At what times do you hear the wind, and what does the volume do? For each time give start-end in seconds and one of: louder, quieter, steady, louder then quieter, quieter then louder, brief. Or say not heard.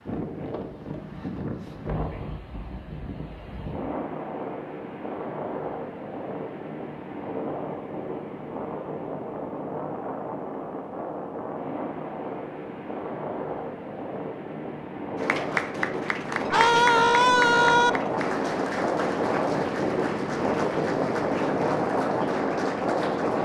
0.0-23.4 louder.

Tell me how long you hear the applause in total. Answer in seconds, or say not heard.
8 s.